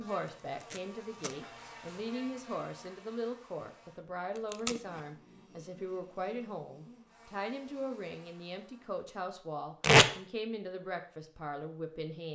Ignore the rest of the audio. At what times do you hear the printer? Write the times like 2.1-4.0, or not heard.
not heard.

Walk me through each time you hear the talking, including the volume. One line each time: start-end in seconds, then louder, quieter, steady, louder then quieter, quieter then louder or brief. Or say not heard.
0.0-12.2 steady.